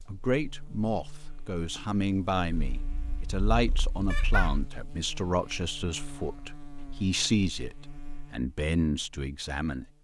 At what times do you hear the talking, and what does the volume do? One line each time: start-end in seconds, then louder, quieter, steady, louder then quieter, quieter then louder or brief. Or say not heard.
0.1-9.8 steady.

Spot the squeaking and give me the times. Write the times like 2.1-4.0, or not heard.
4.1-4.5.